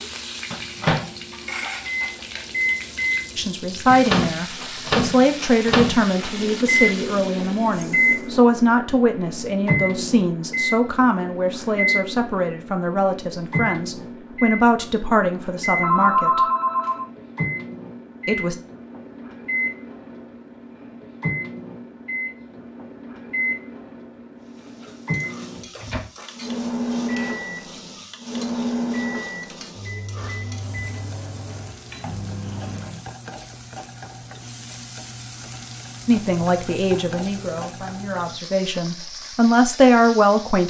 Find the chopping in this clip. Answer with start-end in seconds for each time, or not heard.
not heard.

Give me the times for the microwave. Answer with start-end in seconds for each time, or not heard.
0.5-33.0.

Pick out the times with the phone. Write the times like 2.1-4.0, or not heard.
15.8-17.1.